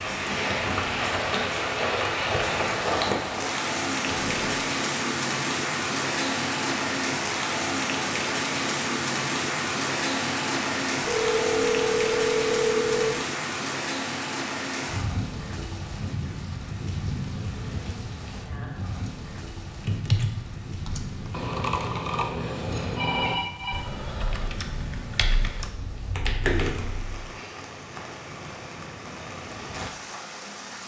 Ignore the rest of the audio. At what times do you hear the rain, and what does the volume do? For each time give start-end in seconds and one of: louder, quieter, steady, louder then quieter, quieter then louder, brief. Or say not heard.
0.0-30.8 quieter.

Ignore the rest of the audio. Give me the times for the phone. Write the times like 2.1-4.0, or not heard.
4.0-4.6, 11.0-13.2, 22.7-23.9.